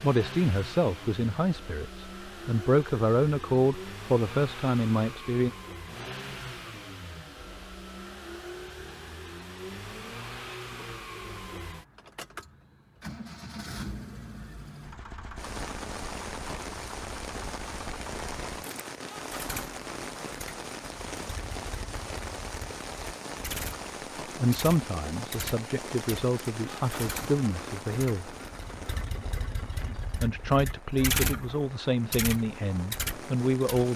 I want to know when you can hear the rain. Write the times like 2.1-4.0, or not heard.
15.3-33.9.